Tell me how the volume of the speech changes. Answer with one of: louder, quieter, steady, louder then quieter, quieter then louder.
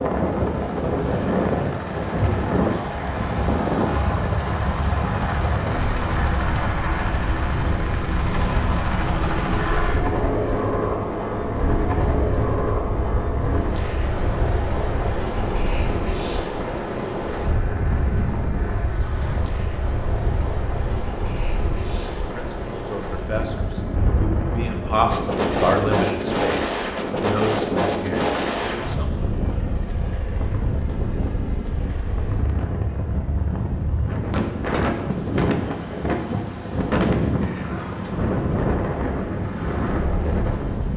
louder then quieter.